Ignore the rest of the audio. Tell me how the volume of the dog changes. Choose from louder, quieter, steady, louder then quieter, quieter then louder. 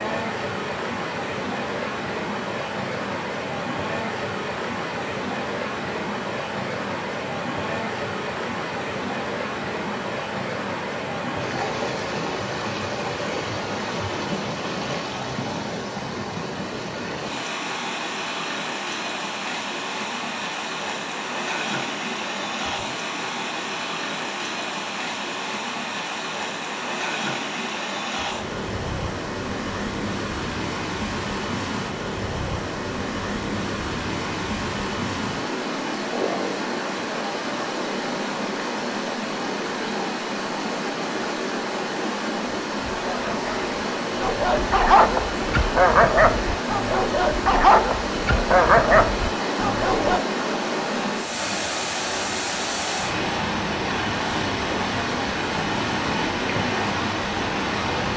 louder.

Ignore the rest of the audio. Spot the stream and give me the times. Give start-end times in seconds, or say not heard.
0.0-58.1.